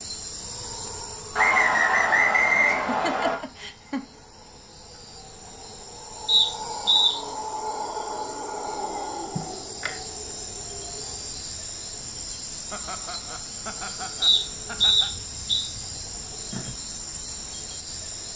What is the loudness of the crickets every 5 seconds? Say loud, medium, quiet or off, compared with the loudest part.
medium, loud, loud, loud.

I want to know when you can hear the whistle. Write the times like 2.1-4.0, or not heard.
1.4-3.4, 6.2-7.2, 14.2-15.6.